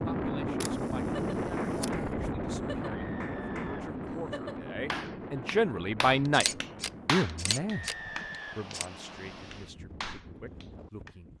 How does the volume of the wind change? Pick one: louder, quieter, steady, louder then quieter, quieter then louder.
quieter.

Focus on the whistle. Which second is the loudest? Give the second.
8 s.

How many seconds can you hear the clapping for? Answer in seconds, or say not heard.
9 s.